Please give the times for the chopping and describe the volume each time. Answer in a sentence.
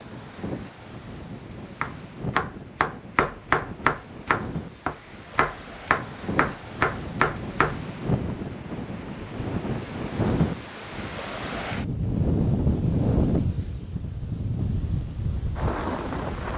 You can hear the chopping from 1.8 to 7.8 s, at a steady volume.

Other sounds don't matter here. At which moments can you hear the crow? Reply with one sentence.
You can't hear the crow here.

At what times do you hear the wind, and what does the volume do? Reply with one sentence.
You can hear the wind from 0.0 to 16.5 s, getting louder.